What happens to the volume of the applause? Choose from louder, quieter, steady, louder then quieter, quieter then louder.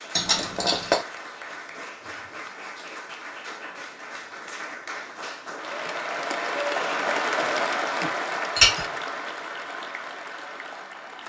louder then quieter.